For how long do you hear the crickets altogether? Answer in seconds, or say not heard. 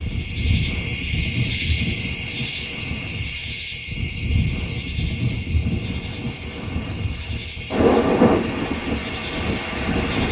10 s.